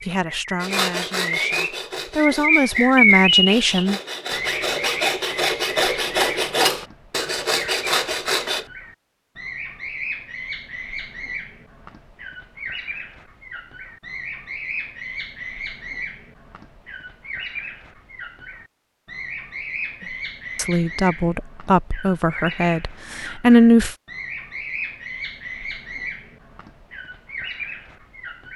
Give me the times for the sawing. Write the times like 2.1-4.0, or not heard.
0.6-8.7.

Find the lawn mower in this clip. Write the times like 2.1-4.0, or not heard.
not heard.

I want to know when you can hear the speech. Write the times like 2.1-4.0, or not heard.
0.0-4.0, 20.6-23.9.